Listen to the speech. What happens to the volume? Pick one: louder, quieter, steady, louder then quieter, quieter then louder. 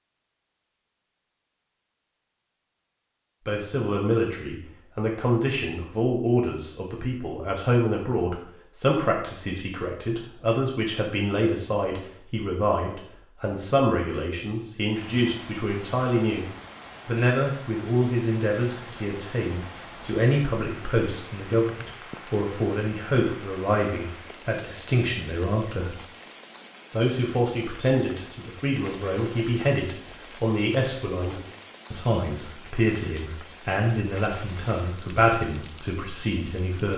steady.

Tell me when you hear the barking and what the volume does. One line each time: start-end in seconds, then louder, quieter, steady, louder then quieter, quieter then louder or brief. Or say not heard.
not heard.